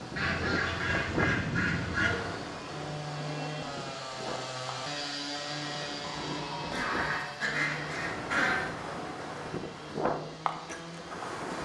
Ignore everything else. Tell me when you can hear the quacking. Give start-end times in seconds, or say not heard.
0.1-2.1, 6.7-8.7.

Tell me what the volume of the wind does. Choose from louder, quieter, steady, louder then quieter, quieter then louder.
quieter then louder.